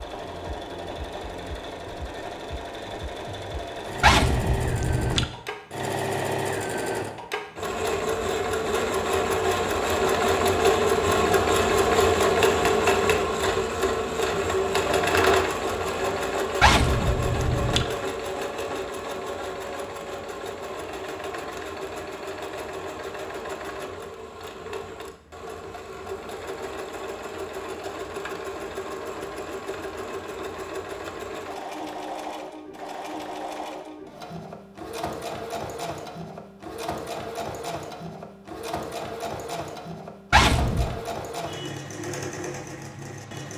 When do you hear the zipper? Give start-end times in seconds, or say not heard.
4.0-5.2, 16.6-17.9, 40.3-41.0.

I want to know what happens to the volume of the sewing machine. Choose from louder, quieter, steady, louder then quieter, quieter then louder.
louder then quieter.